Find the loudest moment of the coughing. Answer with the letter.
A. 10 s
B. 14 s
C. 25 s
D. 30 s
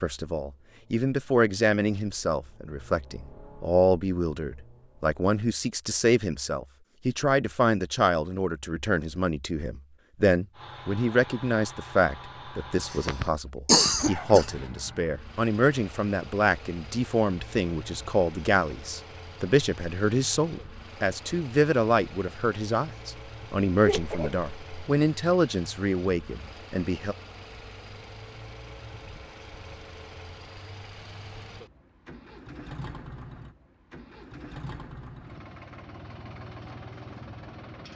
B.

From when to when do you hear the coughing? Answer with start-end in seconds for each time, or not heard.
12.9-14.4, 23.9-24.9.